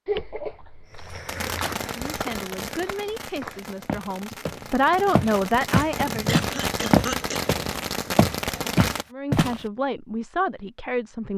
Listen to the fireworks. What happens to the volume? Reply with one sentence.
The loudness of the fireworks goes down, then up.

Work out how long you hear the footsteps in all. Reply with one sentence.
You can hear the footsteps for 9 seconds altogether.